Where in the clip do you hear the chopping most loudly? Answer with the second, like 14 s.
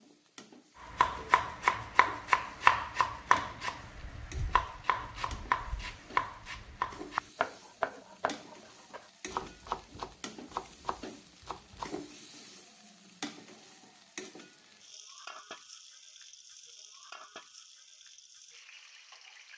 3 s.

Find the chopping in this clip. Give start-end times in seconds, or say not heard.
0.9-12.1.